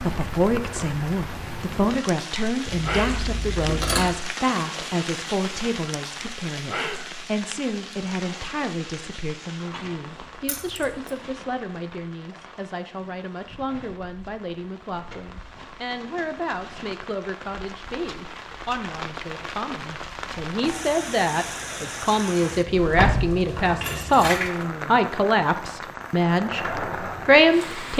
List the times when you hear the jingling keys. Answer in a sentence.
The jingling keys can be heard from 2.6 to 4.2 s, from 10.4 to 11.1 s and from 22.9 to 24.5 s.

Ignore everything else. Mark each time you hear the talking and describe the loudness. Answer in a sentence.
The talking can be heard from 0.0 to 27.9 s, getting quieter then louder.